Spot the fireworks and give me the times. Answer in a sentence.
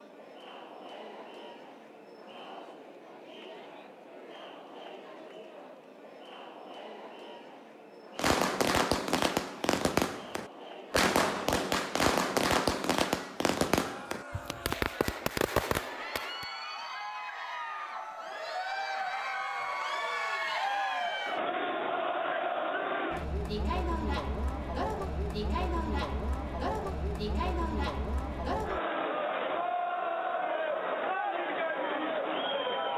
The fireworks can be heard from 8.2 to 16.4 s.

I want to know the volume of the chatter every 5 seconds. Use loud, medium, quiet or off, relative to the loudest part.
quiet, quiet, quiet, medium, loud, loud, loud.